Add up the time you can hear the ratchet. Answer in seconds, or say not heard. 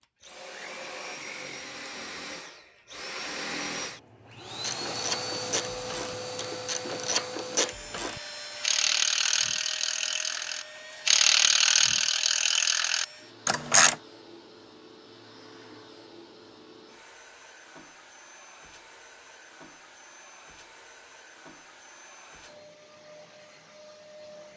9 s.